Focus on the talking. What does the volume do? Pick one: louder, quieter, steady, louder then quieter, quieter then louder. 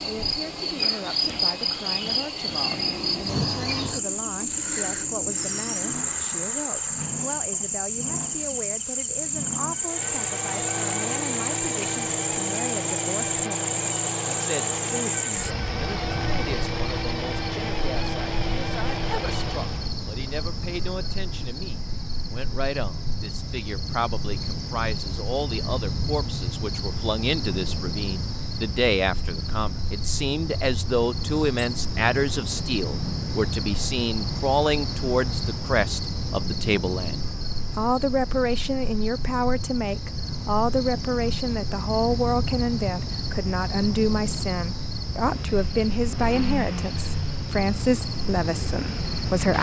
louder.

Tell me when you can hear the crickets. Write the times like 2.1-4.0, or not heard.
0.0-49.5.